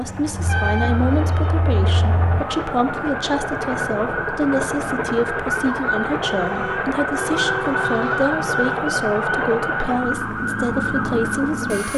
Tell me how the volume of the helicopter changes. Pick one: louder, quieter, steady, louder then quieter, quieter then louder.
steady.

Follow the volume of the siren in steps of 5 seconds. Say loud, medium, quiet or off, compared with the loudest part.
medium, loud, loud.